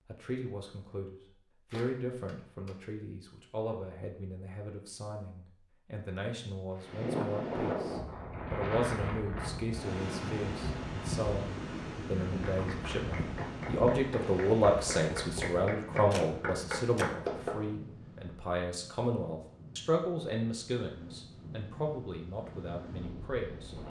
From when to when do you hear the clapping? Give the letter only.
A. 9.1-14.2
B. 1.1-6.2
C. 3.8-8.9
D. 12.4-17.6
D.